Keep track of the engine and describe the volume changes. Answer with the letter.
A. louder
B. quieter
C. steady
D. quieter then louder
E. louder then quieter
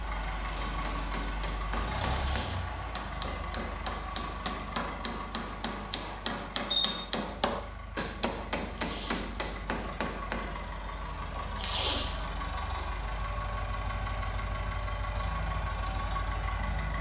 D.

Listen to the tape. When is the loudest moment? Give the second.
12 s.